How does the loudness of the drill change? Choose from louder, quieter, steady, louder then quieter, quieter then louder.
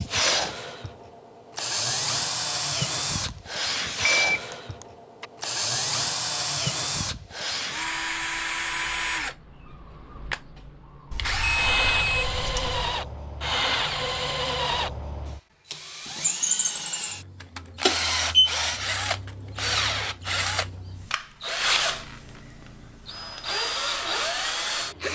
steady.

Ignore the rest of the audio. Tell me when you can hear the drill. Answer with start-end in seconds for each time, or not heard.
0.0-25.1.